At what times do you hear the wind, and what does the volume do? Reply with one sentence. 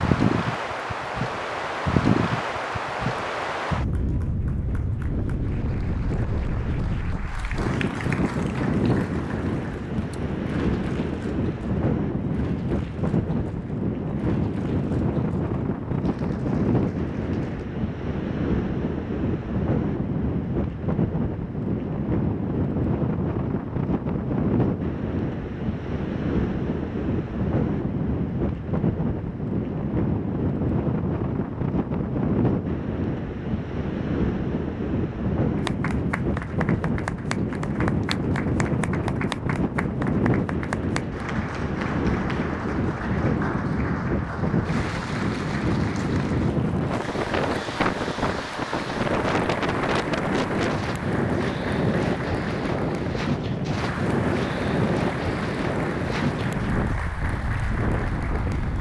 You can hear the wind from 0.0 to 58.7 s, at a steady volume.